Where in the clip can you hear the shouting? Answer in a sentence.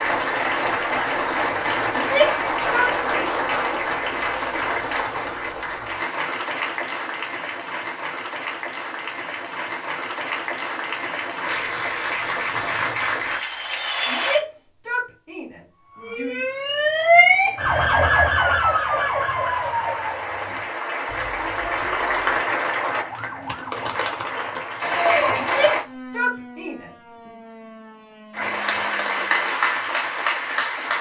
You can hear the shouting from 1.9 to 3.3 s, from 14.1 to 16.4 s and from 25.4 to 27.4 s.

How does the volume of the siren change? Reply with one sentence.
The volume of the siren goes down.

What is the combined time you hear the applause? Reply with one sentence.
You can hear the applause for 26 seconds altogether.